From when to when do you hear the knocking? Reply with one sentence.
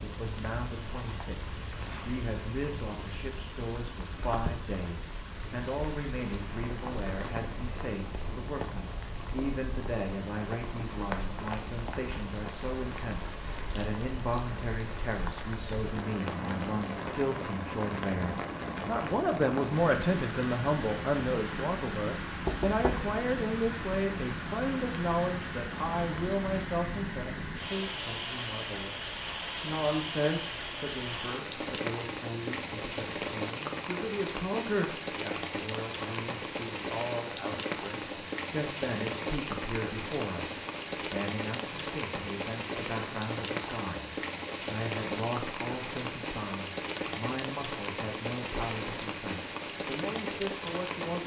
The knocking can be heard from 22.4 to 23.1 s.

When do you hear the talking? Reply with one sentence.
You can hear the talking from 0.0 to 51.2 s.